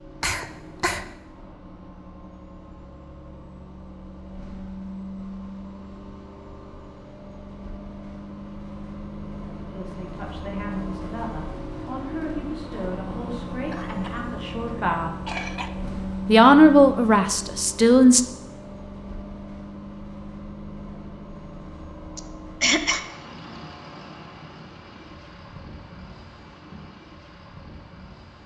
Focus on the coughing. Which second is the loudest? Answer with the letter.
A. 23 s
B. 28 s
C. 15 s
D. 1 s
A.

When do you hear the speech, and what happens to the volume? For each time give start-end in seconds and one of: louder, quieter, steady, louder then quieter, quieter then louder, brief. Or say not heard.
9.7-15.2 steady
16.2-18.2 brief.